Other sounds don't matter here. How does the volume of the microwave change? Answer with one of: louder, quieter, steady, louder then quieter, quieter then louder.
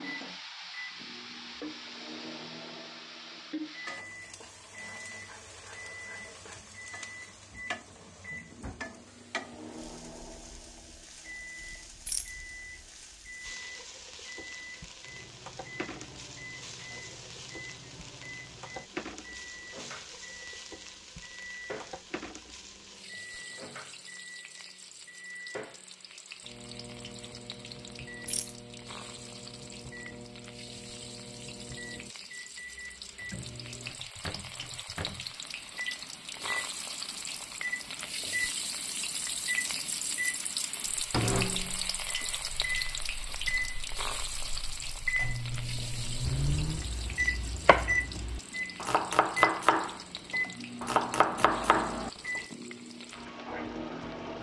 louder.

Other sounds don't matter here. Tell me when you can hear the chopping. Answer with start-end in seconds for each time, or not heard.
46.2-52.4.